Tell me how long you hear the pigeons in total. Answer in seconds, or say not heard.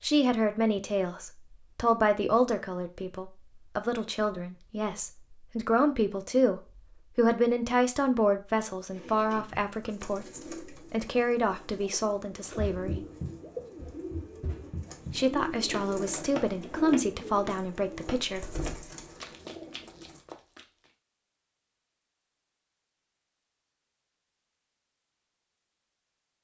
11 s.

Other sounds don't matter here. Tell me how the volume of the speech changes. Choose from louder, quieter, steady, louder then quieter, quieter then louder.
steady.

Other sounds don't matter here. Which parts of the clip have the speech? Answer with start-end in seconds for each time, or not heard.
0.0-12.9, 15.1-18.6.